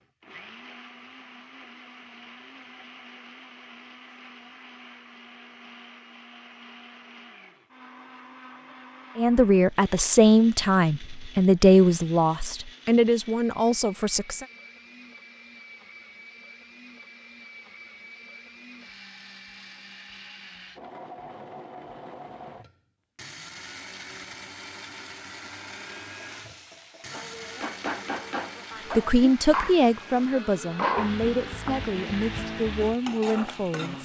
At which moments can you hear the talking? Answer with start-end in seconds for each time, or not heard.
9.2-14.4, 28.9-34.0.